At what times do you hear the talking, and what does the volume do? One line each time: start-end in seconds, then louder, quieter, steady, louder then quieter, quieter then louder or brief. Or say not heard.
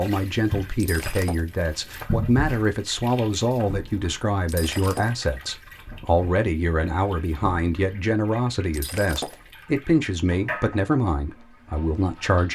0.0-12.5 steady.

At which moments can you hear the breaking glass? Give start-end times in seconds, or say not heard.
0.8-1.4, 4.5-5.1, 8.7-9.4.